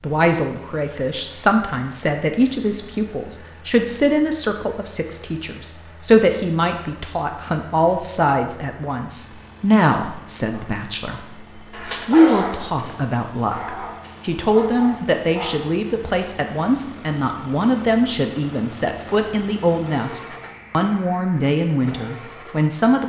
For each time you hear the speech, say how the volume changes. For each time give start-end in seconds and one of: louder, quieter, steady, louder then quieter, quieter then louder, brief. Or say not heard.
0.0-23.0 steady.